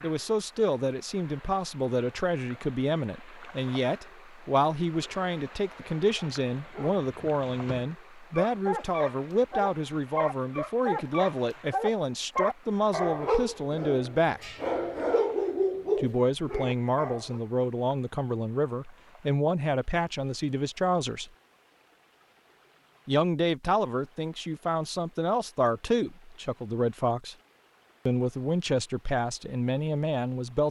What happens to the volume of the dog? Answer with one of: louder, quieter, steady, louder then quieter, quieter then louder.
louder.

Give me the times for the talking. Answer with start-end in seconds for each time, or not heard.
0.0-14.4, 15.9-21.3, 23.1-27.4, 28.1-30.6.